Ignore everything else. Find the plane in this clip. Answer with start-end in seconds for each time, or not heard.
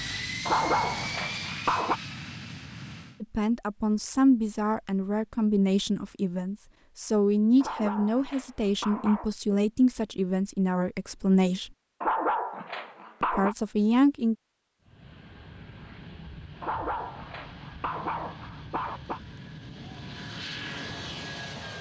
0.0-3.2, 14.8-21.7.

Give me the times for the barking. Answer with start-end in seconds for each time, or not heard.
0.5-2.0, 7.6-9.3, 12.0-13.6, 16.6-19.2.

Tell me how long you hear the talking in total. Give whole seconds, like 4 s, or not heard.
10 s.